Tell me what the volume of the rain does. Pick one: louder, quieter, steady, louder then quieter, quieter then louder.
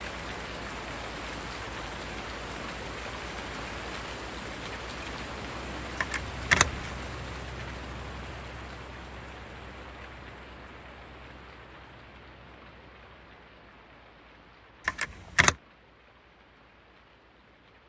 quieter.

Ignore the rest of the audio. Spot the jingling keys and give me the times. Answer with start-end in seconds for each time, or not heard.
6.0-6.8, 14.8-15.6.